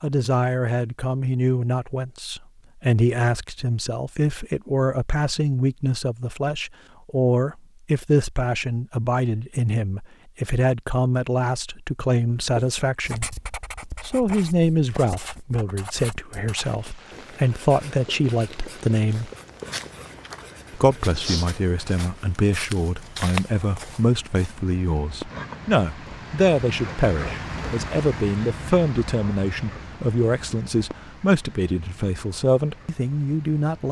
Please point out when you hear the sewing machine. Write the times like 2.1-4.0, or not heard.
not heard.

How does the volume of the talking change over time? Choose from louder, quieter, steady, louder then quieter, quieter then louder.
steady.